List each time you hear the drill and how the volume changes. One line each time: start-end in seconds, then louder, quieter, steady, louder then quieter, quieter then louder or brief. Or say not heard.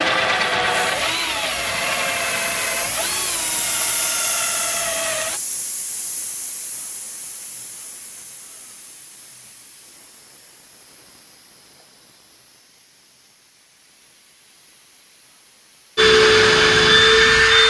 0.0-5.4 quieter
15.9-17.6 brief.